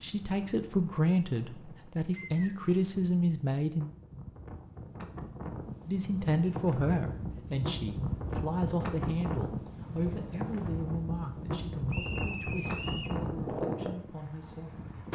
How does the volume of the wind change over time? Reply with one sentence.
The volume of the wind goes up.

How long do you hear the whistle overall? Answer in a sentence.
You can hear the whistle for 2 seconds altogether.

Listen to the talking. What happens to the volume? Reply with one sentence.
The loudness of the talking goes down.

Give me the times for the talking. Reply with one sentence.
You can hear the talking from 0.0 to 3.9 s and from 5.8 to 14.8 s.